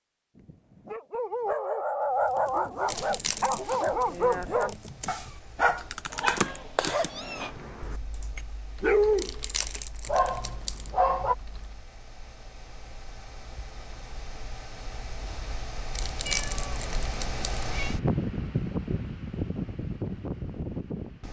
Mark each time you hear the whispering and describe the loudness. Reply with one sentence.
The whispering can't be heard in this clip.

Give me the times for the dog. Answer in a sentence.
The dog can be heard from 0.3 to 11.3 s.